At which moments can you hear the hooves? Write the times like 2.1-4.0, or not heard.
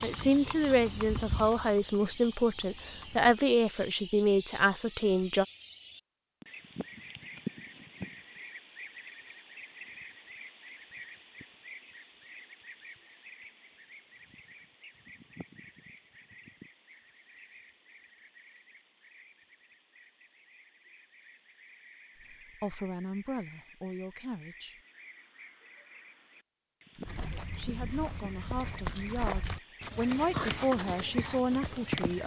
0.0-3.4, 27.1-32.2.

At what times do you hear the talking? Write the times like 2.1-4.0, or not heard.
0.0-5.5, 22.3-24.8, 26.9-32.2.